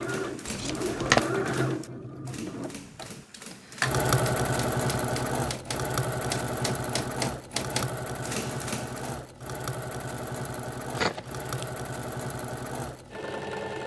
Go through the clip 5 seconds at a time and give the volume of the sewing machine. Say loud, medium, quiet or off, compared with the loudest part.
loud, loud, medium.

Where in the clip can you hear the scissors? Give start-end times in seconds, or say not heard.
0.5-1.2, 10.9-11.7.